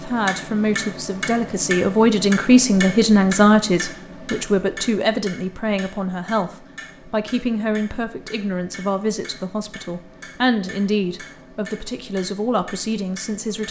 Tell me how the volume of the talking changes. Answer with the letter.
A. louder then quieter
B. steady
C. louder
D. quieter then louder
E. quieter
E.